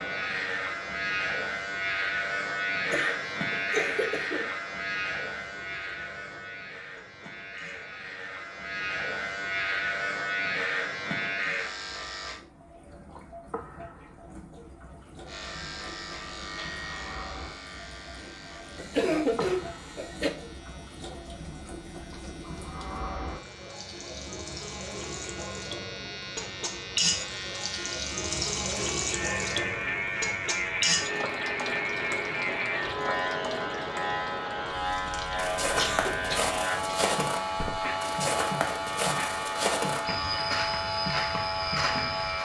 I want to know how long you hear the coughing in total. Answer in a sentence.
The coughing can be heard for 4 seconds in total.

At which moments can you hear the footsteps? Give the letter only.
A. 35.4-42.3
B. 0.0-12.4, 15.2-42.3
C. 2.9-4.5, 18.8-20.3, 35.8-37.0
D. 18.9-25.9
A.